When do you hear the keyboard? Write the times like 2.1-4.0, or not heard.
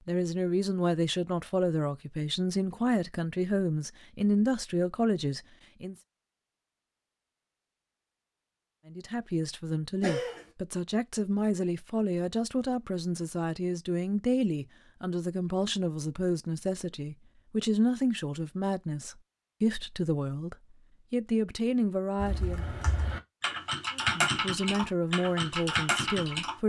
22.2-26.6.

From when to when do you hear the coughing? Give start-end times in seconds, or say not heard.
10.0-10.4.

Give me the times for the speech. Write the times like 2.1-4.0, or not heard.
0.1-6.0, 8.8-22.6, 23.9-26.6.